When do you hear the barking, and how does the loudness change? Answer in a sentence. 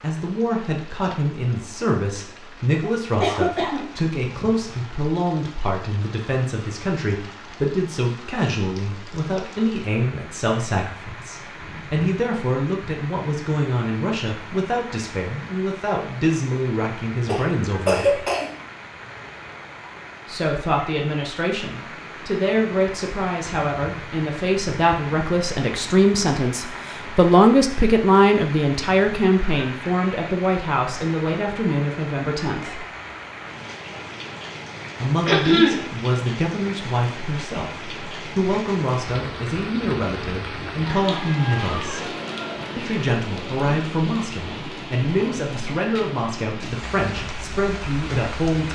You can't hear the barking here.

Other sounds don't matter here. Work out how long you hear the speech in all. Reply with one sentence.
The speech can be heard for 44 seconds in total.